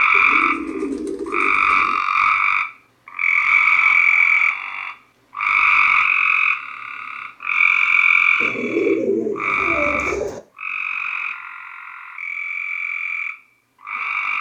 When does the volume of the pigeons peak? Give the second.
9 s.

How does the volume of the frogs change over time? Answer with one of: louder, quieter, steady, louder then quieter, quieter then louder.
quieter.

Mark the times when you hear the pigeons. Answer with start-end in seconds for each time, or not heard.
0.1-2.0, 8.4-10.4.